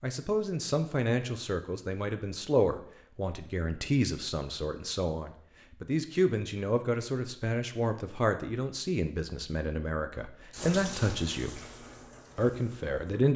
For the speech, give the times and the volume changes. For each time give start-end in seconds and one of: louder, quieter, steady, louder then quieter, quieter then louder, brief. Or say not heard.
0.0-11.6 steady
12.3-13.3 brief.